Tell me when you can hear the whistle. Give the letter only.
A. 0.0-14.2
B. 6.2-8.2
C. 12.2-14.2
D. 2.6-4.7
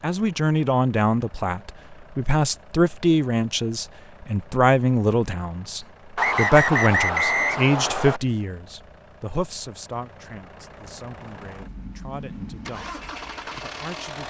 B.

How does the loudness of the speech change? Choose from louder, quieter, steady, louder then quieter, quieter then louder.
quieter.